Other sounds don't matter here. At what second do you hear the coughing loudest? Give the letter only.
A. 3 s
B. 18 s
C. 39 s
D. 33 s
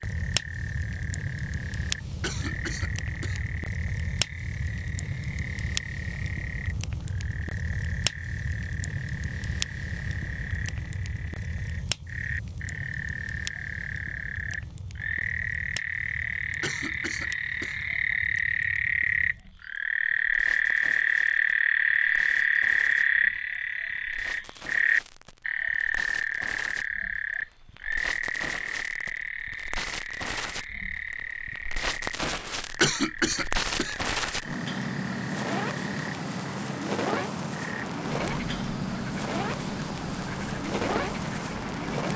D.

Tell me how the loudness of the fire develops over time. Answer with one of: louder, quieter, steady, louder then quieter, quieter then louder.
quieter then louder.